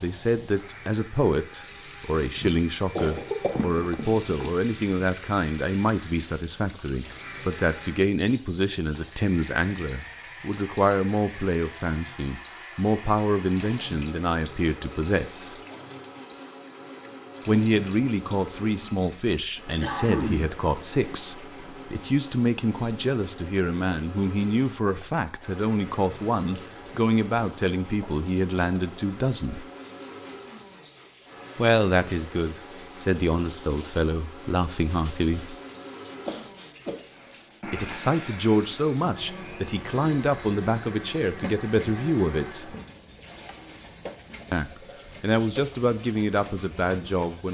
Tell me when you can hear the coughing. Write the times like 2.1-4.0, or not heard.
3.0-4.5, 19.8-20.6, 36.2-37.0.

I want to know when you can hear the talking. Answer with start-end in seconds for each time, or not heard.
0.0-15.6, 17.4-29.6, 31.6-35.5, 37.6-42.8, 44.5-47.4.